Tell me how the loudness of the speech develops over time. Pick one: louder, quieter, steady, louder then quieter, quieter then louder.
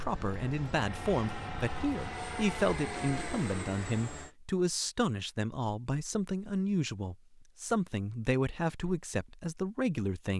steady.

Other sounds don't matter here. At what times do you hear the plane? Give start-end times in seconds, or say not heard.
0.0-4.3.